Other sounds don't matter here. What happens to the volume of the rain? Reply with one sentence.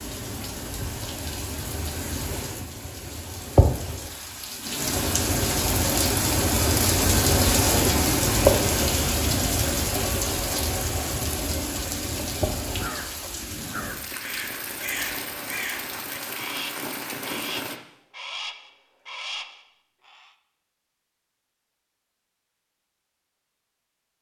The loudness of the rain goes up, then down.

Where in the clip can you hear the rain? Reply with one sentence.
The rain can be heard from 0.0 to 17.8 s.